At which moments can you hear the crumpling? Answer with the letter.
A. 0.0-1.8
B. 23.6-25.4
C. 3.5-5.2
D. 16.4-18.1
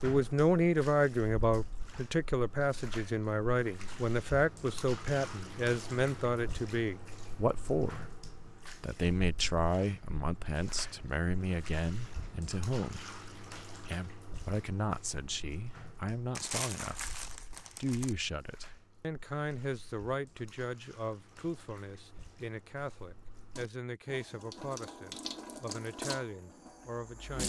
D.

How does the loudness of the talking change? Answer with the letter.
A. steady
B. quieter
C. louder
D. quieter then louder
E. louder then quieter
B.